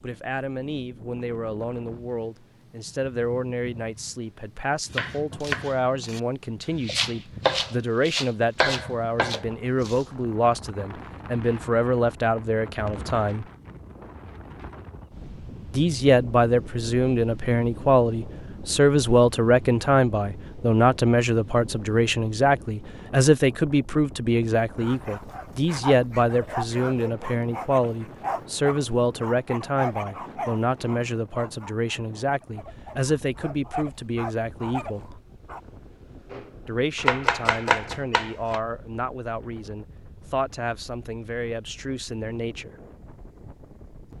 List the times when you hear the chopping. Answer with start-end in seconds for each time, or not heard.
4.8-6.2, 6.8-10.1, 36.3-38.6.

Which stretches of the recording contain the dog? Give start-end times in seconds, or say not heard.
24.8-35.6.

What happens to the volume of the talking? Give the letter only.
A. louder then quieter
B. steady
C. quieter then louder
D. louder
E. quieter
A.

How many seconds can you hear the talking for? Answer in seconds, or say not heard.
39 s.